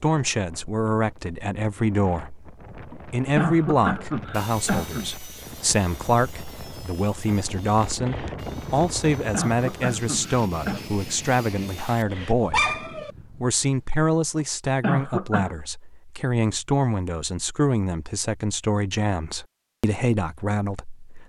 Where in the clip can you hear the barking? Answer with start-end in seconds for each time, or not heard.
11.8-13.1.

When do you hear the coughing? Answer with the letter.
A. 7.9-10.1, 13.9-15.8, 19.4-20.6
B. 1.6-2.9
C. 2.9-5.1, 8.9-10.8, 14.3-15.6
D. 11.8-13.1
C.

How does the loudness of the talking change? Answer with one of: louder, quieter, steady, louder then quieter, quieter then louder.
steady.